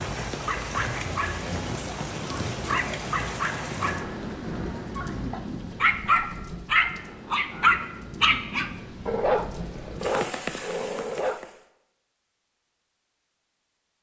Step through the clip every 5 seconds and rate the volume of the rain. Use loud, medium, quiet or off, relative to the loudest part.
loud, medium, loud.